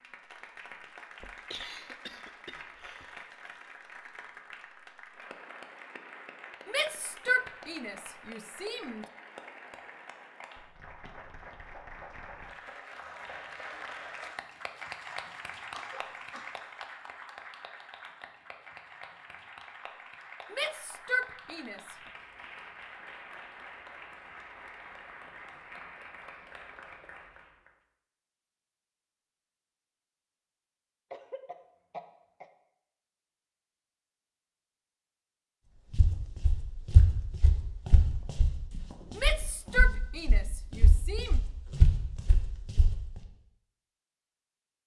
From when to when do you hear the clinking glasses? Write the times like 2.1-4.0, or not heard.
not heard.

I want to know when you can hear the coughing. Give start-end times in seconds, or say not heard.
1.2-3.1, 15.1-16.6, 31.1-32.5.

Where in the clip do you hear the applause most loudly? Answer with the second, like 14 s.
15 s.